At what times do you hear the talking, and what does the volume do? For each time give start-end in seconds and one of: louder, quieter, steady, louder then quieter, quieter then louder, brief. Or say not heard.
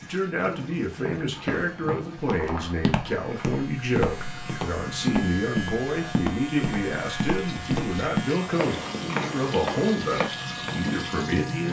0.0-11.6 steady.